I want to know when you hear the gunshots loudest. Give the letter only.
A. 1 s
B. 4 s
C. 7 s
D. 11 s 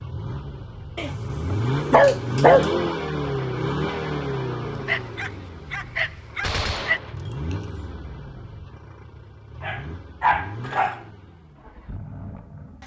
C.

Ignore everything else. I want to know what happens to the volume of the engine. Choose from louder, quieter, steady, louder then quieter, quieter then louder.
quieter.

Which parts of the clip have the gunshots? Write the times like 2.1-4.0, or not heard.
6.4-7.9.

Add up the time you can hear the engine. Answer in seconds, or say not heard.
13 s.